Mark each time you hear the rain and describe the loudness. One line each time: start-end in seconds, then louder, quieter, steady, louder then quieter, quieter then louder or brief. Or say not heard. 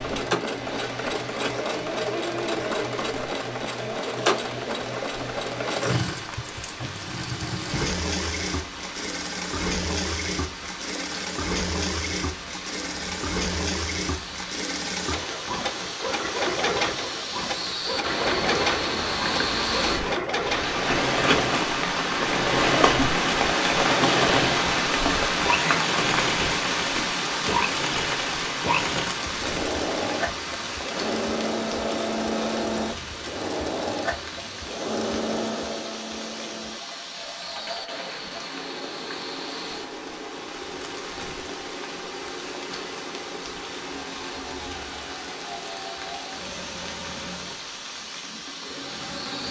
0.0-49.4 louder then quieter.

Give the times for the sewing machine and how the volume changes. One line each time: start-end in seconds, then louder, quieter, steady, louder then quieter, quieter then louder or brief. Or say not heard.
0.0-49.4 quieter.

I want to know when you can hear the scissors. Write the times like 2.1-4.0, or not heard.
18.0-20.1.